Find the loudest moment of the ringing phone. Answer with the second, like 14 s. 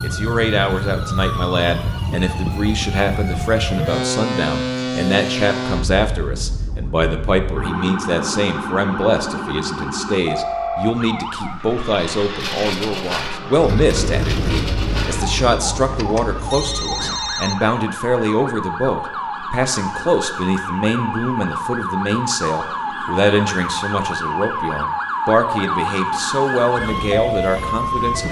17 s.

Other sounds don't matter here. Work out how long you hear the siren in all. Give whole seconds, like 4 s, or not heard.
28 s.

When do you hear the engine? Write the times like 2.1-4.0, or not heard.
11.4-17.3.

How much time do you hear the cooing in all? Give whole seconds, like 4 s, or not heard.
not heard.